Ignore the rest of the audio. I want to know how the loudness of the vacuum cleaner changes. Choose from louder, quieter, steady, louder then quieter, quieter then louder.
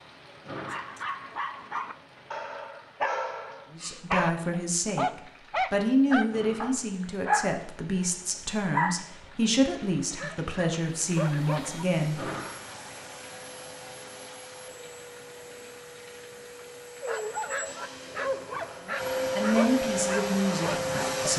louder.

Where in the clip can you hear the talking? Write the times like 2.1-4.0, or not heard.
3.7-12.3, 18.8-21.3.